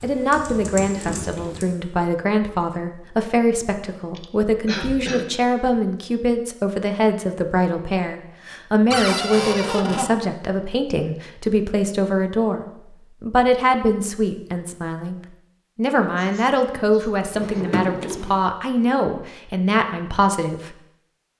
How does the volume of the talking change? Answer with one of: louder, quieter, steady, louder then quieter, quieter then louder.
steady.